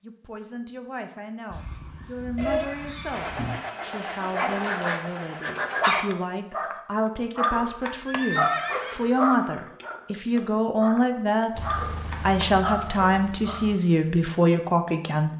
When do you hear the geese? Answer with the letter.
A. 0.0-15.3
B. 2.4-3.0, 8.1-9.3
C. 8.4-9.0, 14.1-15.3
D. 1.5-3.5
D.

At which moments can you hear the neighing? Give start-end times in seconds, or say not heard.
2.4-3.0, 8.1-9.3.